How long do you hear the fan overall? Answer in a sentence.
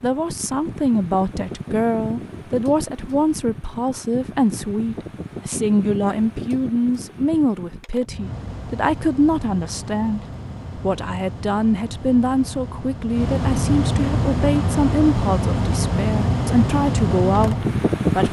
The fan can be heard for 18 seconds in total.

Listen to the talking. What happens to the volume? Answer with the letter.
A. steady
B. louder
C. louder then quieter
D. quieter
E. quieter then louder
A.